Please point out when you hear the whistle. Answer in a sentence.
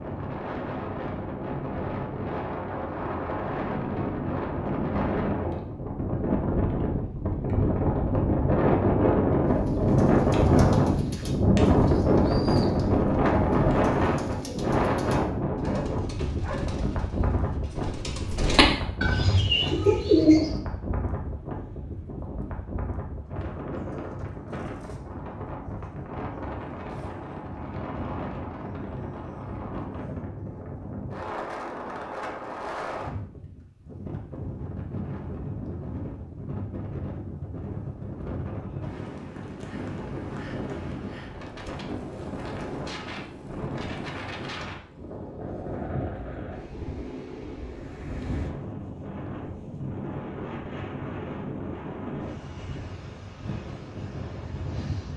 You can't hear the whistle here.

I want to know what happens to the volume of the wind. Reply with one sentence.
The volume of the wind goes down.